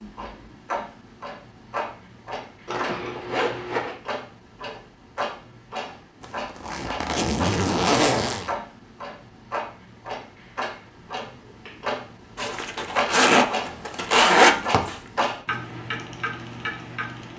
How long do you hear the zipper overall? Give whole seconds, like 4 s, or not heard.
6 s.